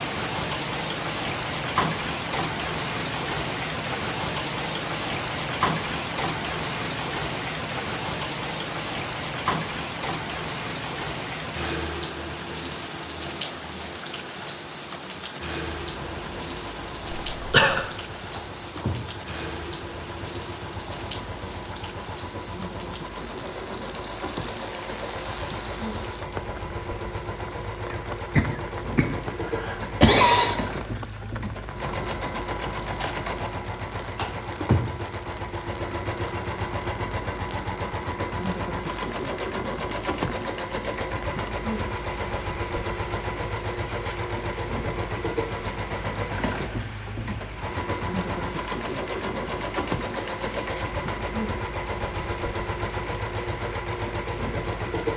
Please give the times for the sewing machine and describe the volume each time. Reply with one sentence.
You can hear the sewing machine from 15.8 to 55.1 s, getting louder.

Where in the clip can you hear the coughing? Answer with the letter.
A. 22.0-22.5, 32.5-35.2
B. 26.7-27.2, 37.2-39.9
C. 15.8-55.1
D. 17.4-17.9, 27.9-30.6
D.